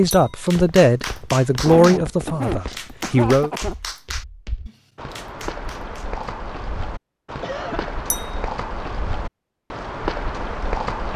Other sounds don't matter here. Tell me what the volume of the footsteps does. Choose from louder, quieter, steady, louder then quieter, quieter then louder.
louder.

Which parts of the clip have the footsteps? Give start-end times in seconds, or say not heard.
0.0-11.1.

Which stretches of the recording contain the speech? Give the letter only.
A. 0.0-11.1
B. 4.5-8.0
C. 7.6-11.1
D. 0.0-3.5
D.